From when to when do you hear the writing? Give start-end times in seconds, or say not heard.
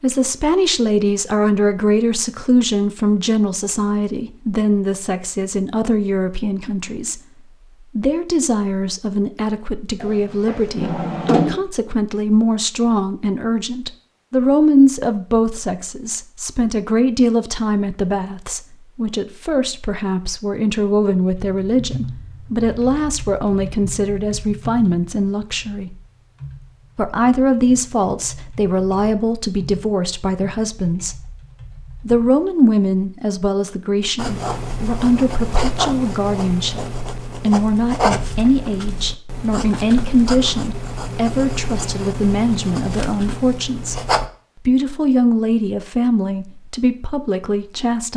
34.1-44.3.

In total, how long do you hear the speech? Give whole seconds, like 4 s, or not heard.
45 s.